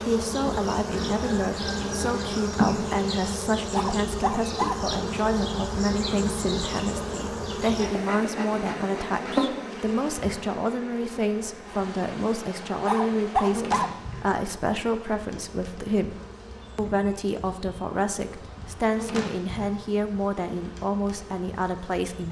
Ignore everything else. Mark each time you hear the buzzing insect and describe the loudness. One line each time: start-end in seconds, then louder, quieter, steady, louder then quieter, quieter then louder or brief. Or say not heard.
0.0-22.2 quieter.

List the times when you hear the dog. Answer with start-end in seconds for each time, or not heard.
3.8-4.9, 12.8-14.0.